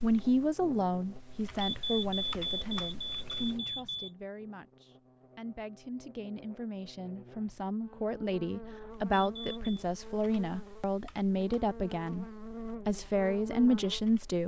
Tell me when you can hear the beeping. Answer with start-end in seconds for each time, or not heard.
1.6-4.1, 9.1-9.6.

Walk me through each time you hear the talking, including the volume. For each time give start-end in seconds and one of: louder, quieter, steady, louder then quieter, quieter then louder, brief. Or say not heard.
0.0-12.2 quieter then louder
12.8-14.4 brief.